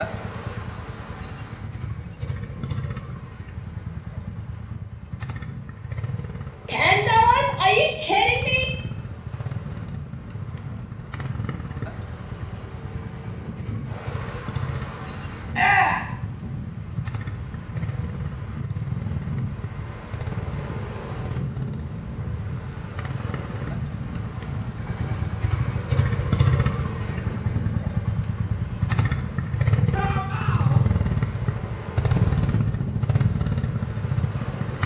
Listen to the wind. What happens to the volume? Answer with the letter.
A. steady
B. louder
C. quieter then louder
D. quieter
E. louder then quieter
B.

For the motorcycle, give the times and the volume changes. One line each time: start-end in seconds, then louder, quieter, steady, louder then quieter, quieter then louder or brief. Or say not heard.
0.0-34.8 louder.